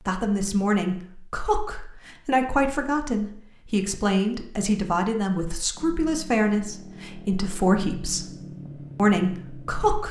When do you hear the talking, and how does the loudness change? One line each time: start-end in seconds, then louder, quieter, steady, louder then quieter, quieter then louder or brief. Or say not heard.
0.1-8.2 steady
8.9-10.0 brief.